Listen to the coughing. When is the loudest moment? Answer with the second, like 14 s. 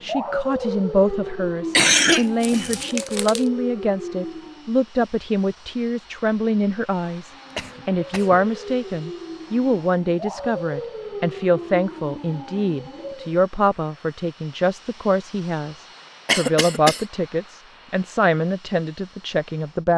2 s.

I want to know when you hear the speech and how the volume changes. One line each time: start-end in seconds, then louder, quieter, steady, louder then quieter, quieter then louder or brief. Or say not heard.
0.0-19.9 steady.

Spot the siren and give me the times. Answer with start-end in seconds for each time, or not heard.
0.0-4.8, 7.3-13.4.